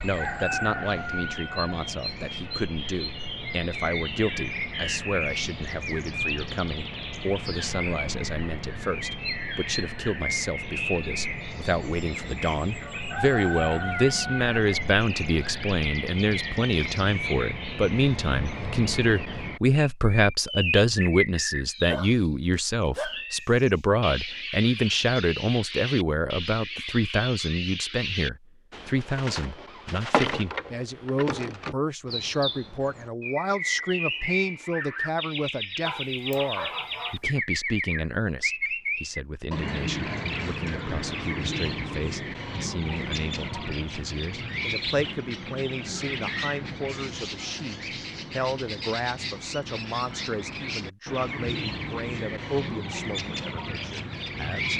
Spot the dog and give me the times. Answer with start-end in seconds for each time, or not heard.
21.9-23.8, 35.9-37.4.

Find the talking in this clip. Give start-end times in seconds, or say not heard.
0.0-54.7.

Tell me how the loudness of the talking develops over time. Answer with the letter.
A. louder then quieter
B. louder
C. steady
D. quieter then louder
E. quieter
A.